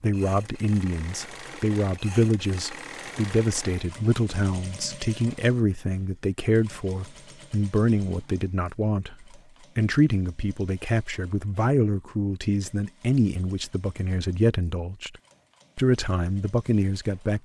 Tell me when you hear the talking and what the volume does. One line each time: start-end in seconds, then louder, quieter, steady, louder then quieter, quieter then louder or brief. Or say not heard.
0.0-15.1 steady
15.8-17.4 brief.